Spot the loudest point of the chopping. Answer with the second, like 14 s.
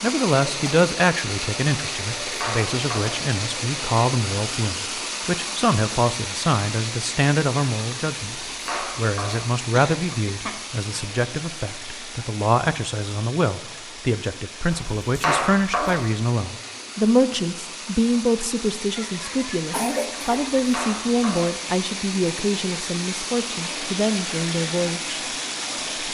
15 s.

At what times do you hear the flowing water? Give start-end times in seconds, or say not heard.
0.0-26.0.